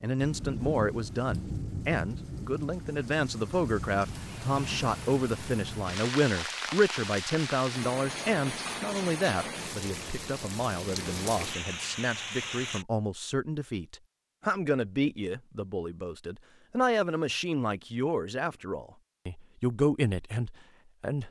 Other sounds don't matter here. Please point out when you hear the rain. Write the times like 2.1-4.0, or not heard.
0.1-12.8.